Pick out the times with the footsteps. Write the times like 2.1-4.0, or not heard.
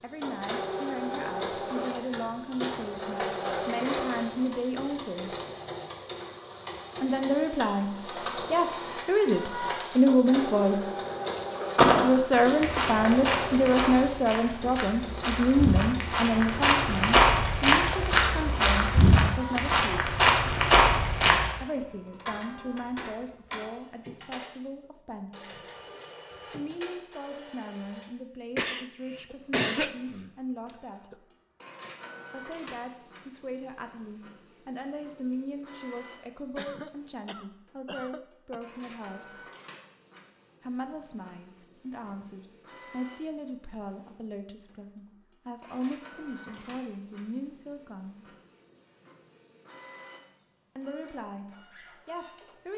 11.6-21.6.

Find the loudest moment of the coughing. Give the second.
30 s.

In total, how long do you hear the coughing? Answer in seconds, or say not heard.
4 s.